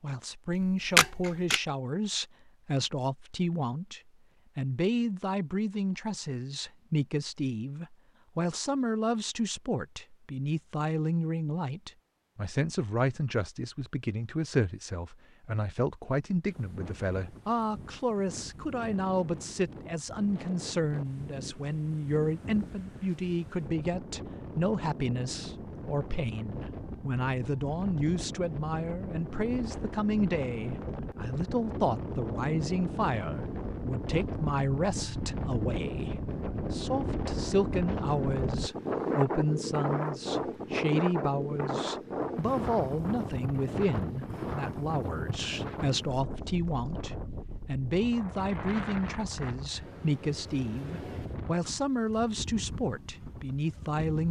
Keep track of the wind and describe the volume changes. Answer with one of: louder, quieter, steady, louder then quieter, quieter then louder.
louder then quieter.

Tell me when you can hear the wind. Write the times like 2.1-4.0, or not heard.
16.5-54.2.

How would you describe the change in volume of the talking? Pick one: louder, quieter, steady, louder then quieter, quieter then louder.
steady.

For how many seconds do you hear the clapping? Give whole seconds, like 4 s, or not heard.
not heard.